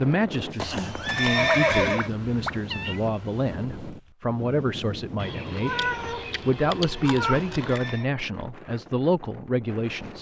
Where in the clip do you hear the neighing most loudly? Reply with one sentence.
The loudest moment of the neighing is at 2 seconds.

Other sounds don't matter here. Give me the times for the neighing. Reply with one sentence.
The neighing can be heard from 0.6 to 2.1 s and from 7.2 to 8.1 s.